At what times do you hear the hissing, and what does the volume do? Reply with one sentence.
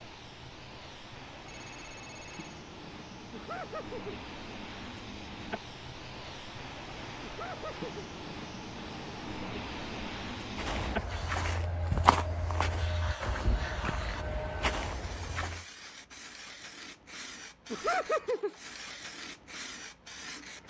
You can hear the hissing from 0.0 to 20.6 s, getting louder then quieter.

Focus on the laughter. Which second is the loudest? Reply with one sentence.
The volume of the laughter peaks at 18 seconds.